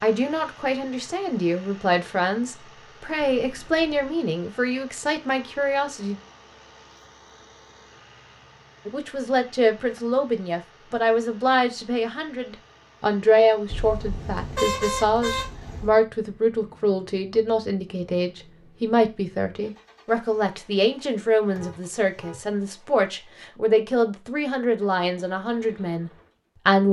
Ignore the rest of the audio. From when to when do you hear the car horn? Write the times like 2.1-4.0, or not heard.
3.2-4.1, 13.7-15.9, 21.5-22.4.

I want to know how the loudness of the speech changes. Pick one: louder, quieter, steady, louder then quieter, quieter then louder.
steady.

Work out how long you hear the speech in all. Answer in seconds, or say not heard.
24 s.